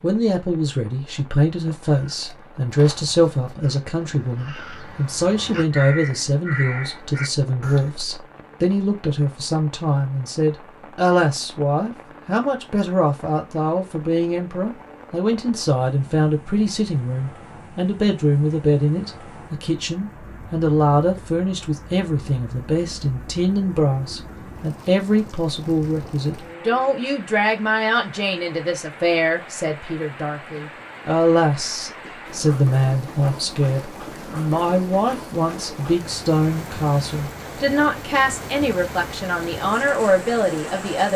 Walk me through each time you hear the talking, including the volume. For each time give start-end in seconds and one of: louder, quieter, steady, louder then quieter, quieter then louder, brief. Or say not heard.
0.0-41.1 steady.